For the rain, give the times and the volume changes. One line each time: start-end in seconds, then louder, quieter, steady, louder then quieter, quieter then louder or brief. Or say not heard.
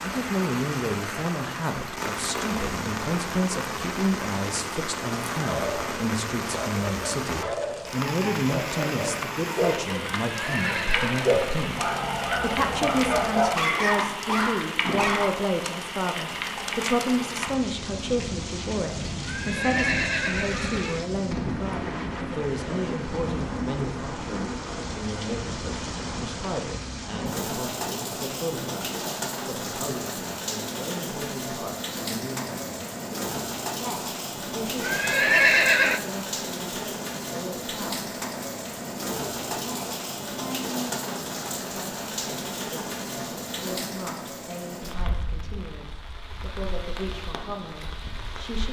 0.0-48.6 steady.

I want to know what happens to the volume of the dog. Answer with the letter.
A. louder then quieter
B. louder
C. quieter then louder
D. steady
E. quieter
B.